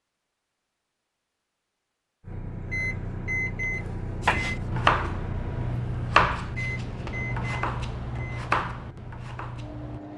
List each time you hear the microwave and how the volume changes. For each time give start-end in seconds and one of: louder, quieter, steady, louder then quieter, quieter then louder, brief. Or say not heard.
2.2-10.1 quieter.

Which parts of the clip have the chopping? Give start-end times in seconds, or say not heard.
4.2-10.0.